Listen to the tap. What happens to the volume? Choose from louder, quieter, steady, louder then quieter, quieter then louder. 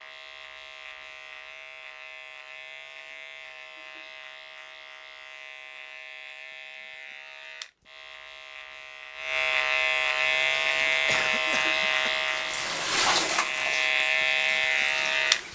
louder then quieter.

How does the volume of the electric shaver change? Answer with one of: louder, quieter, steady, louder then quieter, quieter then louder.
louder.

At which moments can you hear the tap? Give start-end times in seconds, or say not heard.
10.2-15.5.